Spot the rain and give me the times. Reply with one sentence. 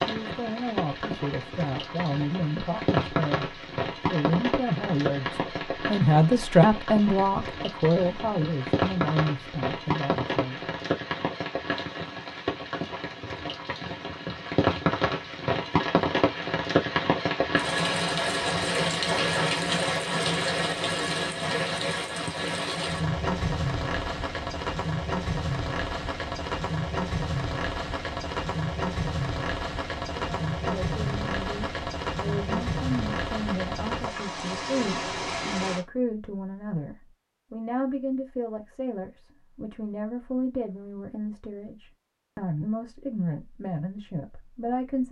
The rain can be heard from 0.0 to 35.9 s.